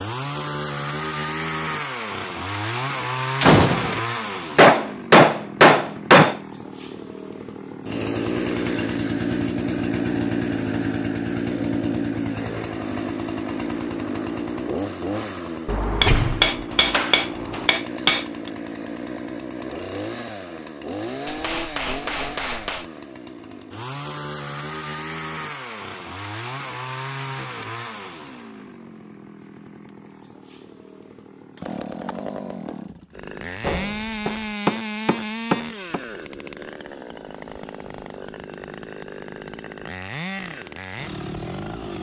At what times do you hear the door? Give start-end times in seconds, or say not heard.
3.4-4.0, 15.7-17.7, 33.5-34.5.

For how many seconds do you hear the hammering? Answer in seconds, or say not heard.
8 s.